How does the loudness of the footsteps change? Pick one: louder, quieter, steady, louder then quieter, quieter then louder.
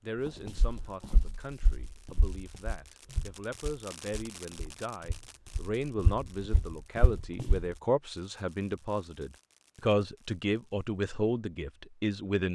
quieter then louder.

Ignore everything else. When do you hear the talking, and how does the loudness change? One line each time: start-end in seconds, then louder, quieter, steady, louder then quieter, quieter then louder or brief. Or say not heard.
0.0-12.4 louder.